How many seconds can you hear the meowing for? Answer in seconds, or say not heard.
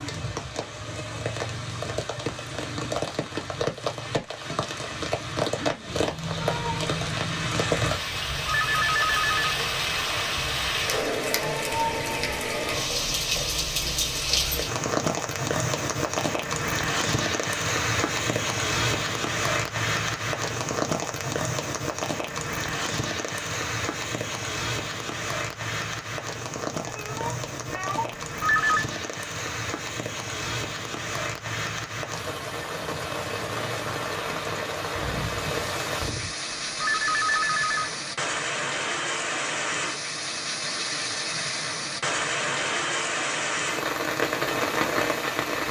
5 s.